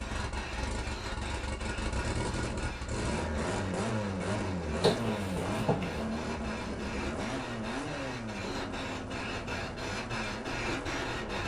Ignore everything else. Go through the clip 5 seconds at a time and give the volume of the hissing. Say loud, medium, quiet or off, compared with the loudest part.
medium, medium, loud.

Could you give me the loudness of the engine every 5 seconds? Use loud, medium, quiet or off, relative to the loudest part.
loud, loud, medium.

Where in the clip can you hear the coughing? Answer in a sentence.
The coughing can be heard from 4.8 to 6.1 s.